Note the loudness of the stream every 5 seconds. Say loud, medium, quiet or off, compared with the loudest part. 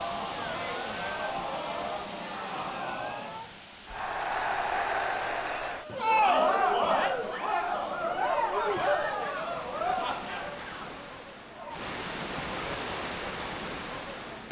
medium, medium, loud.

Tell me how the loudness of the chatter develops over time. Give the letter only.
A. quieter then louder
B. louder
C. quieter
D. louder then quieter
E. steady
D.